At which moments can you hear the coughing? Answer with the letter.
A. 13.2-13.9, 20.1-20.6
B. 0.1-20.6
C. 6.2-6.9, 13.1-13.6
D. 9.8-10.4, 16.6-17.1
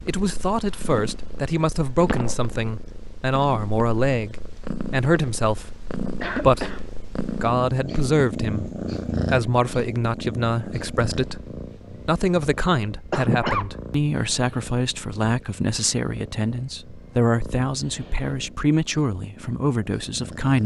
C.